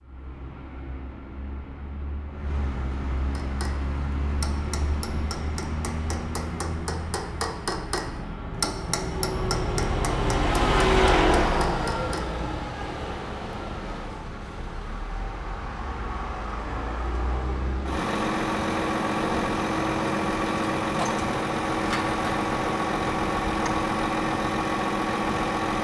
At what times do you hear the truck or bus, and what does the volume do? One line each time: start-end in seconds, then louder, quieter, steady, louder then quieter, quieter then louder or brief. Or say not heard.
0.0-25.7 louder.